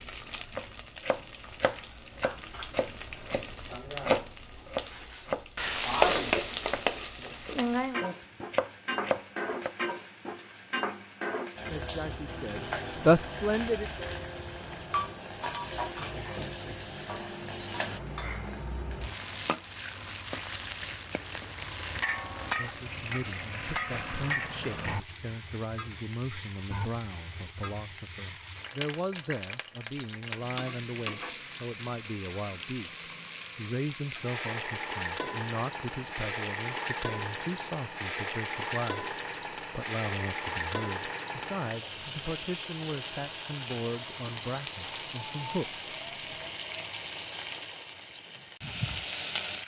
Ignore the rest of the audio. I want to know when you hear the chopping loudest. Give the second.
4 s.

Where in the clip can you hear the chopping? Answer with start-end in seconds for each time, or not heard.
0.6-9.8.